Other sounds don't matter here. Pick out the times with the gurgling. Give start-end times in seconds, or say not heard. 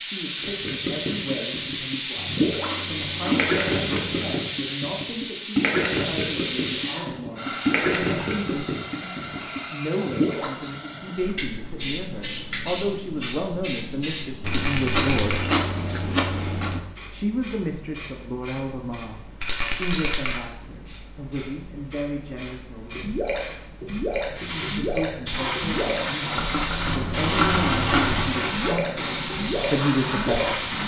0.4-11.2, 22.9-30.8.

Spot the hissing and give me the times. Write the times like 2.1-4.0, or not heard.
0.0-30.8.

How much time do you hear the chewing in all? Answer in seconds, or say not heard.
6 s.